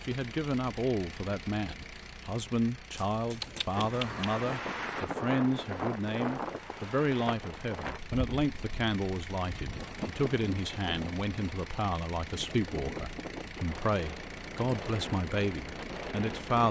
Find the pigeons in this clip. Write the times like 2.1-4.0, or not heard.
3.0-4.4.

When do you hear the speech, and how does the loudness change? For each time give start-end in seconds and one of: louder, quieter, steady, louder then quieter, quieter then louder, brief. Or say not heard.
0.1-16.6 steady.